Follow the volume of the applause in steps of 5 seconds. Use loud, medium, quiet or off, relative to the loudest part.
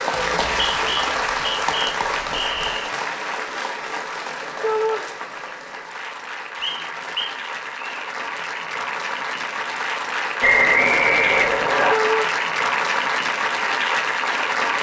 loud, medium, loud.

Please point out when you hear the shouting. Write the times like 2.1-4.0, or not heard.
4.6-5.0, 11.9-12.3.